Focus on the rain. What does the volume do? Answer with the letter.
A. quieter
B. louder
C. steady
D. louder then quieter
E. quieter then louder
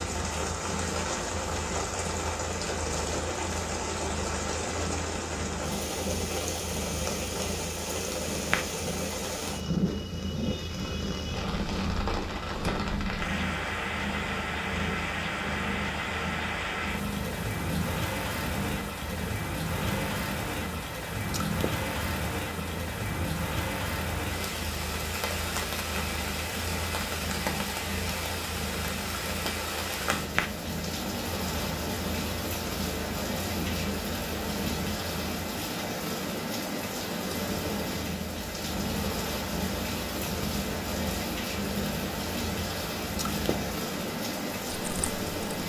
C.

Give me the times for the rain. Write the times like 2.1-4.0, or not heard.
0.0-45.6.